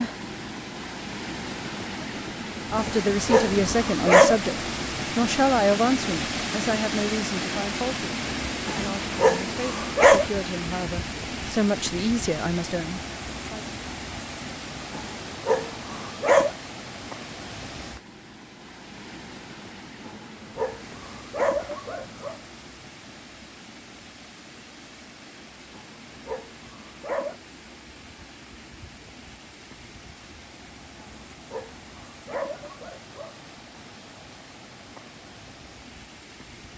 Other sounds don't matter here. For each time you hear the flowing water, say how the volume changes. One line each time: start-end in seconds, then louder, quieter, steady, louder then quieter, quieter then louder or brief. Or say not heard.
0.0-36.7 quieter.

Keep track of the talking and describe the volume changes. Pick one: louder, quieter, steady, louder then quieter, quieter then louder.
quieter then louder.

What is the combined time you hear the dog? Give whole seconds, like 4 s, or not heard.
11 s.